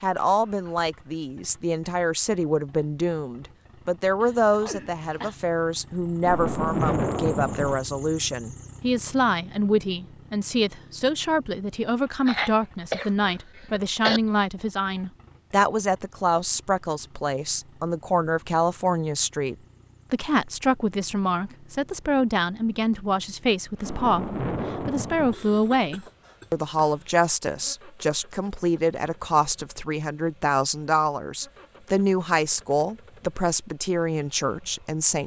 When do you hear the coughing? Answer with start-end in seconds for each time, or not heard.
4.2-5.3, 12.2-14.2, 25.3-27.2.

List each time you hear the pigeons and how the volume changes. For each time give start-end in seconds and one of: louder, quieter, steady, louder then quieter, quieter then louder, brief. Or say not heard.
not heard.